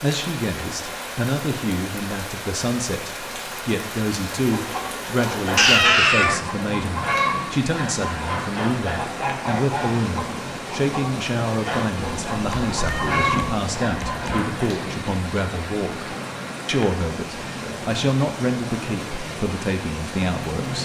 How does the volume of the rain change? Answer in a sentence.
The loudness of the rain stays about the same.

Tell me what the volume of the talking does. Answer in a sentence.
The loudness of the talking stays about the same.